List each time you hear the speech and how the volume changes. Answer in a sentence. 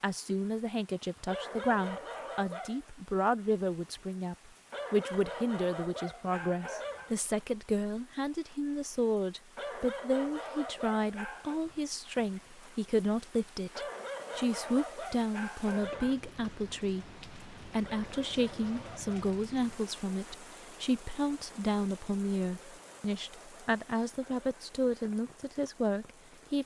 You can hear the speech from 0.0 to 26.6 s, at a steady volume.